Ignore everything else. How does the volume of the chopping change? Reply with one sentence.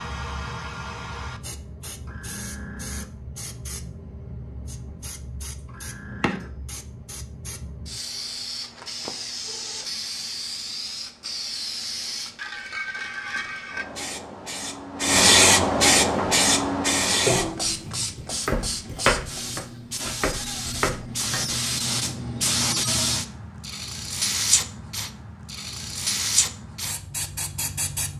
The volume of the chopping goes up, then down.